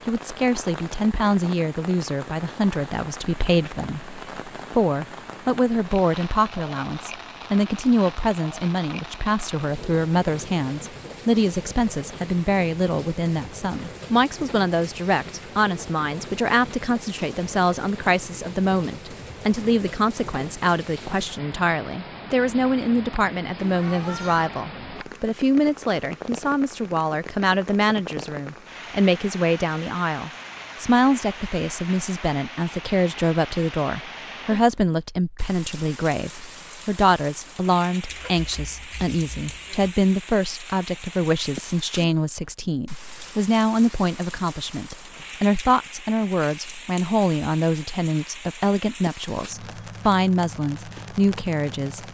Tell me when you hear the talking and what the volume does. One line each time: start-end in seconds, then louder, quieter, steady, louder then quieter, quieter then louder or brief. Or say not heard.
0.1-52.0 steady.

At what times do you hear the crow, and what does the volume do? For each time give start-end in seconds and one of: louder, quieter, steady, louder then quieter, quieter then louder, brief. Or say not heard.
not heard.